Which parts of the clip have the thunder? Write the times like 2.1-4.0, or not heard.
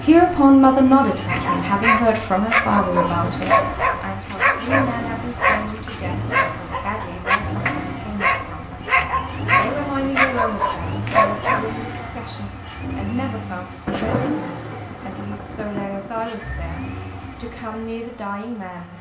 13.8-16.3.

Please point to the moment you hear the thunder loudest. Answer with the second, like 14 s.
14 s.